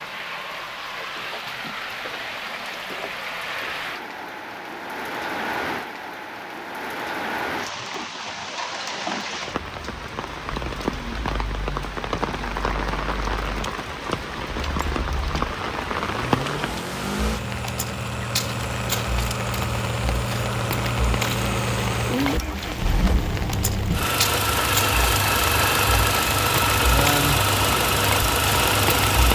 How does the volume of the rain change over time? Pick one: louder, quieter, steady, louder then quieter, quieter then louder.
steady.